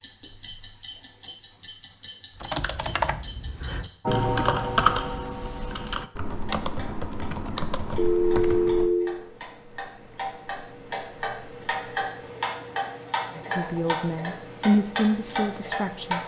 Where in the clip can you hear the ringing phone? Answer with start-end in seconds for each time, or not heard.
8.0-9.2.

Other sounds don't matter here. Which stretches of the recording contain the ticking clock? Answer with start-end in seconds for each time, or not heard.
0.0-16.2.